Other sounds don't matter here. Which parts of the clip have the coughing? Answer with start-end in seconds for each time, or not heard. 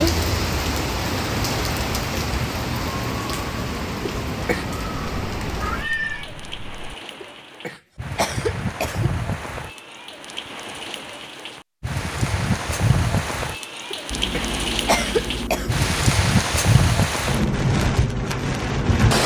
4.0-4.7, 7.2-9.1, 13.9-15.8.